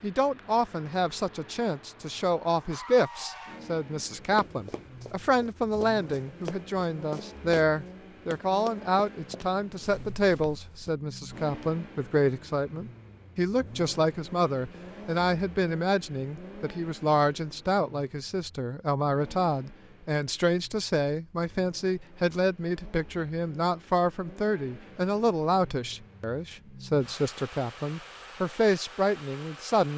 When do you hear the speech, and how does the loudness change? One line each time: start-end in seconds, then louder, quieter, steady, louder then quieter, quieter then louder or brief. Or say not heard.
0.0-29.9 steady.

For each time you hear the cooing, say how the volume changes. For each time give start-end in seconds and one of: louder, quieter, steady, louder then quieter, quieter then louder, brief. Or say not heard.
not heard.